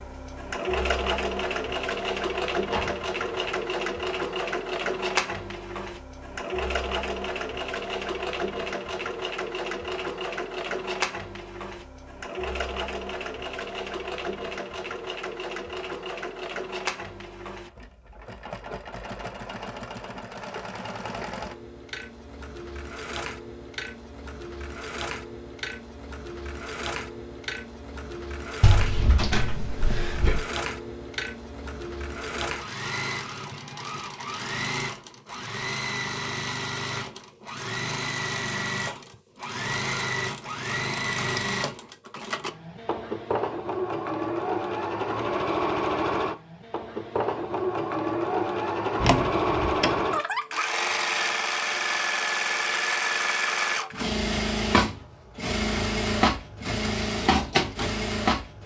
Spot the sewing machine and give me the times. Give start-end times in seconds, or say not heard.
0.0-58.6.